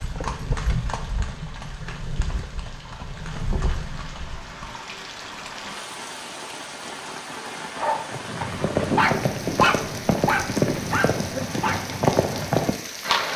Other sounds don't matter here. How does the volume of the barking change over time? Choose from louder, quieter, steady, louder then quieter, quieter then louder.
louder then quieter.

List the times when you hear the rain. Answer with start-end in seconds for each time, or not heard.
0.0-13.3.